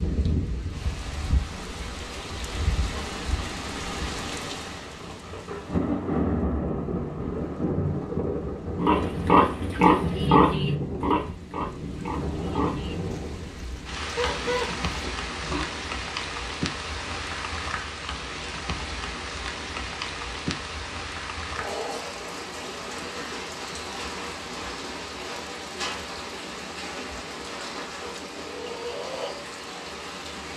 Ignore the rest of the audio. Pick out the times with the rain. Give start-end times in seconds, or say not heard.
0.0-30.5.